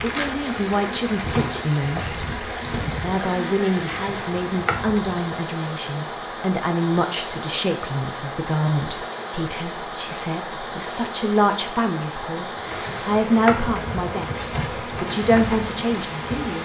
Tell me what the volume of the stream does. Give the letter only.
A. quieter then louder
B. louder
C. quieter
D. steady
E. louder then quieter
D.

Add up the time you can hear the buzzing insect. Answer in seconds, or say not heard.
9 s.